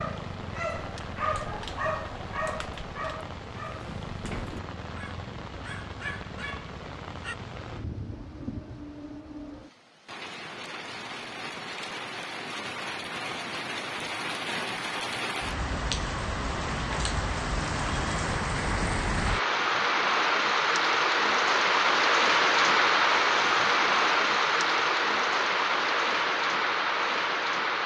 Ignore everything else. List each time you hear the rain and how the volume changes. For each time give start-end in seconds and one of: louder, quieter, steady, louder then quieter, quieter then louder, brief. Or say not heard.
0.0-27.8 louder.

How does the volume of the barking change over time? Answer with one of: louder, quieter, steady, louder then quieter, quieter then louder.
quieter.